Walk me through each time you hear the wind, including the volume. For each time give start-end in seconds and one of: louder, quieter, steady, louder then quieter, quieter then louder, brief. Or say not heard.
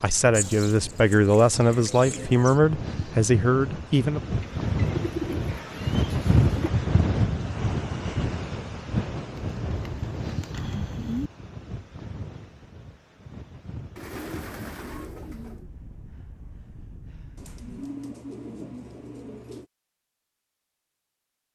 0.0-17.7 louder then quieter.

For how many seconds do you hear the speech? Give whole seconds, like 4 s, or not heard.
4 s.